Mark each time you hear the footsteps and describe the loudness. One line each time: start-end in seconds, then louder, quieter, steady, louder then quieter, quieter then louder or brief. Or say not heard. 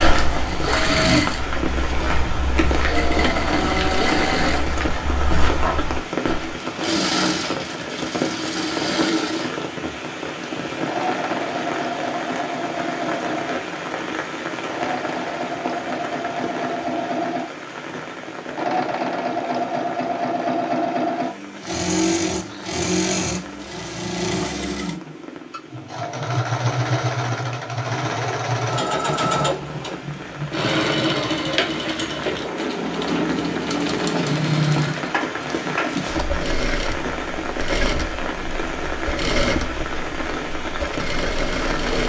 0.0-6.5 steady.